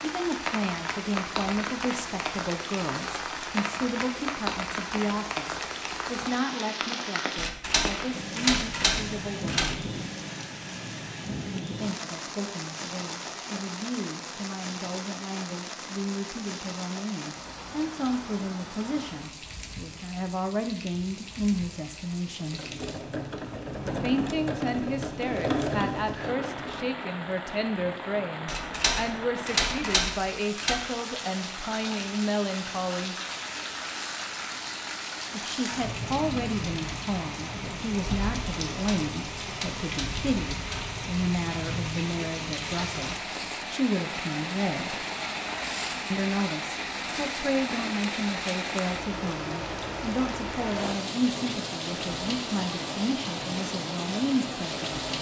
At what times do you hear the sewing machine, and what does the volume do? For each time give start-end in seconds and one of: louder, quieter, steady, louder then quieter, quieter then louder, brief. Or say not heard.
22.4-27.0 louder then quieter.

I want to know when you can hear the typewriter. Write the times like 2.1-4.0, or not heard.
7.3-9.9, 28.4-30.8, 38.7-41.0.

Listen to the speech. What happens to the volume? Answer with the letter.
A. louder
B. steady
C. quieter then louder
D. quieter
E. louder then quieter
B.